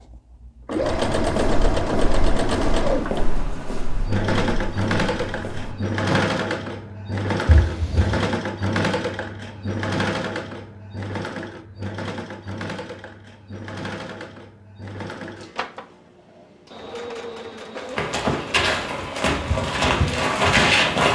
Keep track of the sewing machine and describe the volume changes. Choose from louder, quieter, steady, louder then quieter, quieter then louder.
quieter.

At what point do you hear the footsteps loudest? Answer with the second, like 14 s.
21 s.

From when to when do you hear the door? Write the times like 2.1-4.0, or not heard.
7.5-8.3.